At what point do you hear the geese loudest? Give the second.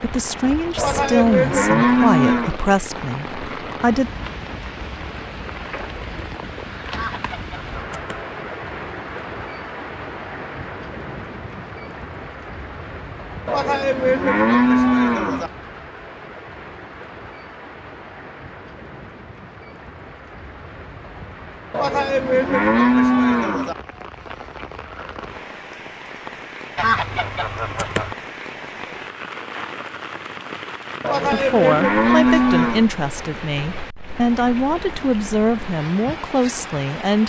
27 s.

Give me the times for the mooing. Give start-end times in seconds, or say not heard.
0.8-2.5, 13.4-15.5, 21.7-23.8, 31.0-32.9.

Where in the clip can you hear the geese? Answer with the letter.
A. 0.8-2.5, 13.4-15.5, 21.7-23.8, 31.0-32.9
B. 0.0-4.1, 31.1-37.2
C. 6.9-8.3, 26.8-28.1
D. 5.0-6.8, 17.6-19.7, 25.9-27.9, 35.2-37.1
C.